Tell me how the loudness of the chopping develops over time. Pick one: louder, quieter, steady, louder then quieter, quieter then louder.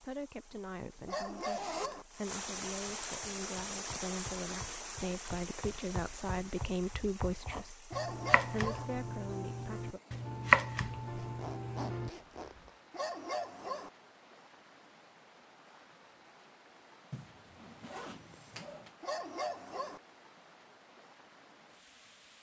louder.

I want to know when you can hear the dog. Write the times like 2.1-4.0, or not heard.
1.1-2.0, 7.9-8.8, 12.9-13.9, 19.0-20.0.